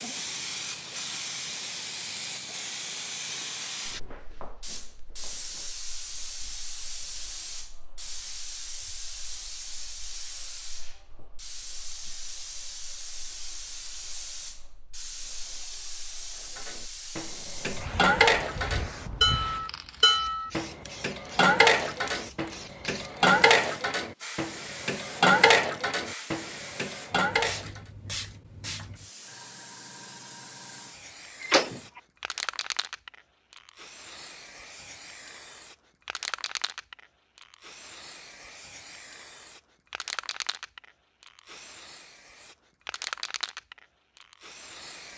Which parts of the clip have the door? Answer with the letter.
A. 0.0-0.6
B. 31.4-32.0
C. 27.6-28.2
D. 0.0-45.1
B.